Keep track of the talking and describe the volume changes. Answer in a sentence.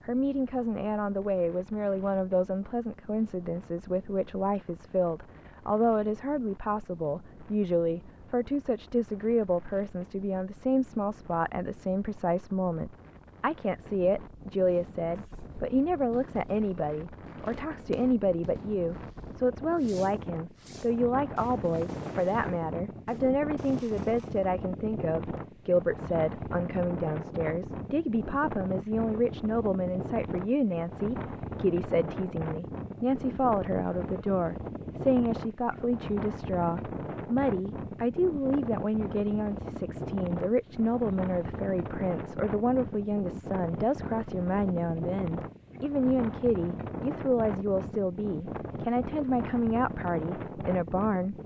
The loudness of the talking stays about the same.